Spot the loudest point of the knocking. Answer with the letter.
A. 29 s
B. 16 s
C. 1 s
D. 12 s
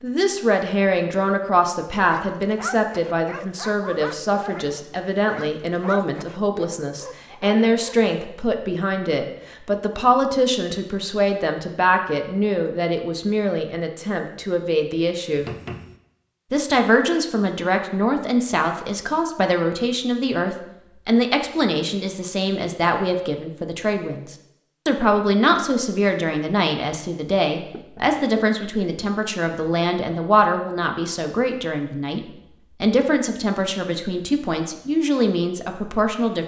B.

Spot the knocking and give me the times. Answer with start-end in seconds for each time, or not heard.
15.3-16.0, 27.7-28.4.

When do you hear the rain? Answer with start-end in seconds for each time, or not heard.
not heard.